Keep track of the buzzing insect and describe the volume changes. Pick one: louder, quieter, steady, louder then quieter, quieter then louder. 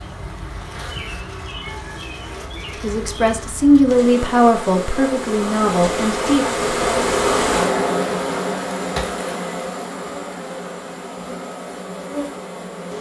louder then quieter.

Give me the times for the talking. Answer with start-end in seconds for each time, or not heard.
2.8-6.5.